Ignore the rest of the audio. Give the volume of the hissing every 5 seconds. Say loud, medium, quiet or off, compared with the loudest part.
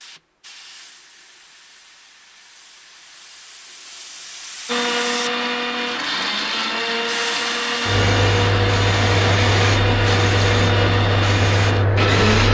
quiet, loud, loud.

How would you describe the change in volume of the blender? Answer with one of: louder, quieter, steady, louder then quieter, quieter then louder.
steady.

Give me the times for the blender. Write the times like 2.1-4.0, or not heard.
4.7-12.4.